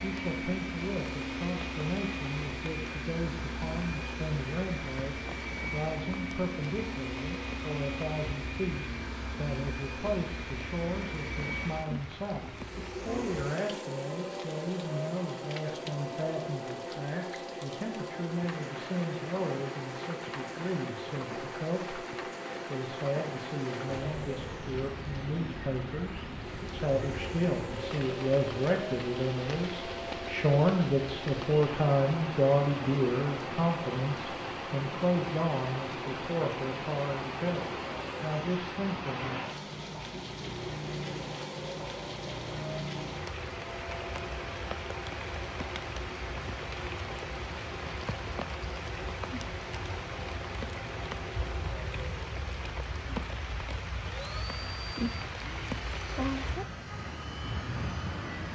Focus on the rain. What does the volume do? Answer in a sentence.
The volume of the rain goes up.